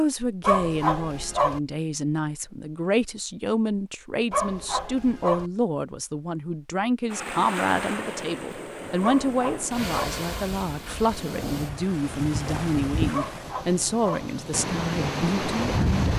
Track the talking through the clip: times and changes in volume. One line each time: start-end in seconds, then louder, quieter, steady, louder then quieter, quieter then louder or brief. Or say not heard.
0.0-16.1 steady.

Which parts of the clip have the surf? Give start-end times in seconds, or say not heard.
7.0-16.1.